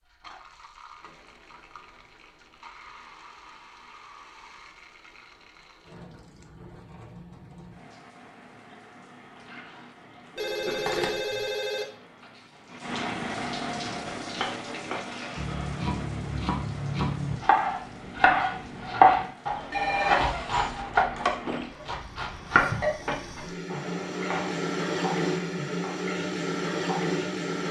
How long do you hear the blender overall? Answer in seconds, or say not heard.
not heard.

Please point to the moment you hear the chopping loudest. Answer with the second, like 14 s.
19 s.